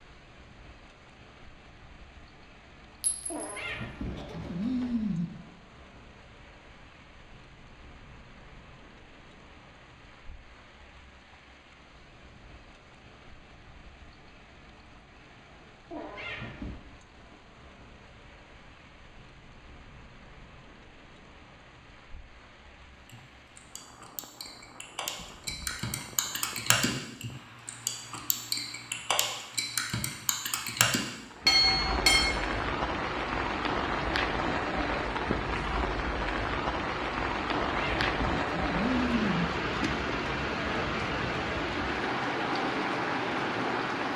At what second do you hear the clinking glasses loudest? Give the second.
32 s.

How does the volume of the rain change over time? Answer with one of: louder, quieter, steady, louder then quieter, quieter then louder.
louder.